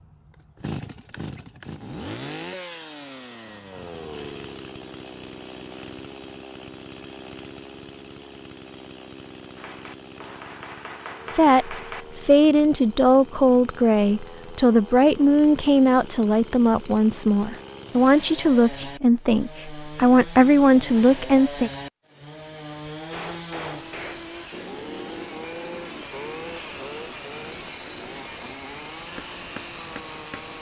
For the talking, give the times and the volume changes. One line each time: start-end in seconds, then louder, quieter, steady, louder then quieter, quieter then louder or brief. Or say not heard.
11.3-21.7 steady.